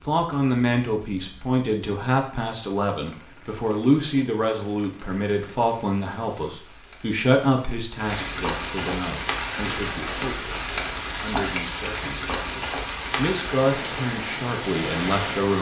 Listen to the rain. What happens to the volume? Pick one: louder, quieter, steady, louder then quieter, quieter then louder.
louder.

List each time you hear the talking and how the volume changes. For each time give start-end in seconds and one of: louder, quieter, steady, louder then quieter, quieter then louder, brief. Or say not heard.
0.1-15.5 quieter then louder.